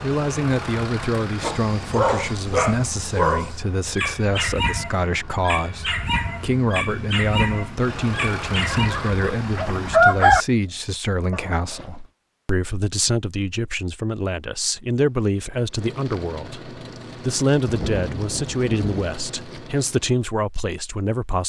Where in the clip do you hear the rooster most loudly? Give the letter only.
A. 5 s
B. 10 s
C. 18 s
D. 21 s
B.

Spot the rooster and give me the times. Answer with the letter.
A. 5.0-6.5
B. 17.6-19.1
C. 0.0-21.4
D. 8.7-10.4
D.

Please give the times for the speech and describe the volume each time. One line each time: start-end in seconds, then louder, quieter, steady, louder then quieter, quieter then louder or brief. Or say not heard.
0.0-21.4 steady.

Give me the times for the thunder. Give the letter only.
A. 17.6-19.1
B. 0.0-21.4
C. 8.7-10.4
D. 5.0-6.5
A.